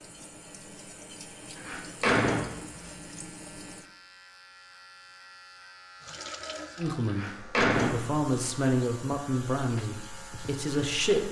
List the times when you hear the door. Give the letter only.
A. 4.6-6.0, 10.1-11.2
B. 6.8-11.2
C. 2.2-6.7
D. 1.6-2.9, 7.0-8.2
D.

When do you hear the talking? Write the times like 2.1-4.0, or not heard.
6.8-11.2.